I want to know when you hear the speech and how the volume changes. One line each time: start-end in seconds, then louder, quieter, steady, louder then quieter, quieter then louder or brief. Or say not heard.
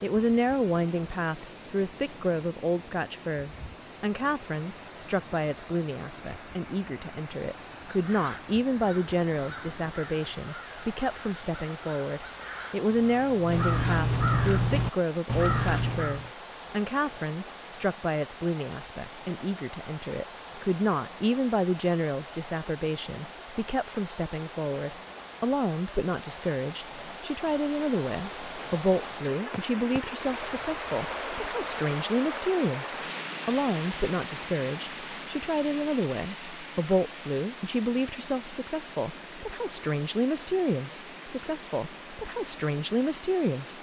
0.0-43.7 steady.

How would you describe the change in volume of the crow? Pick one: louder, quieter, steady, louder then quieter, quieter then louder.
louder.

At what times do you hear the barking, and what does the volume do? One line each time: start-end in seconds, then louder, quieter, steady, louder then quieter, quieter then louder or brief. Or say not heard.
not heard.